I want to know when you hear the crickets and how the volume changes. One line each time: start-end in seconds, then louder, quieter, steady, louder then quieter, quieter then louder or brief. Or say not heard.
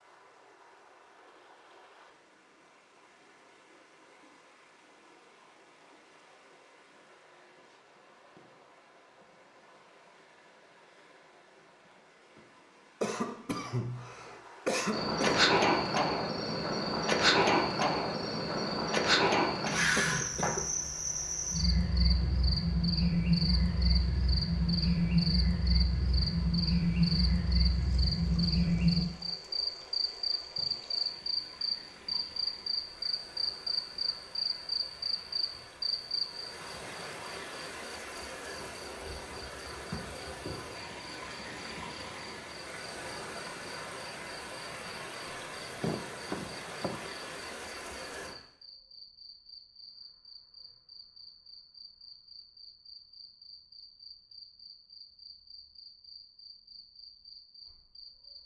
14.9-58.4 quieter.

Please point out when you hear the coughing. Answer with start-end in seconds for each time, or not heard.
13.0-15.4, 19.9-20.6, 45.8-47.0.